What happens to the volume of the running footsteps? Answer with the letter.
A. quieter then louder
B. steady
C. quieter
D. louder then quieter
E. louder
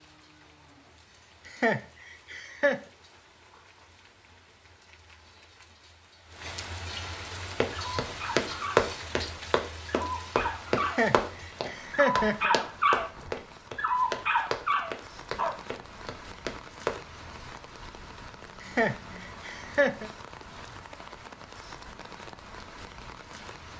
C.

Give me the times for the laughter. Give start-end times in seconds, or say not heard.
1.4-2.8, 10.8-12.6, 18.6-20.1.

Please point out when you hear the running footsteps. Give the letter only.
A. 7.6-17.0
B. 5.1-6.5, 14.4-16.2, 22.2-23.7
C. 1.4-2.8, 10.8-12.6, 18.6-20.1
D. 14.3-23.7
A.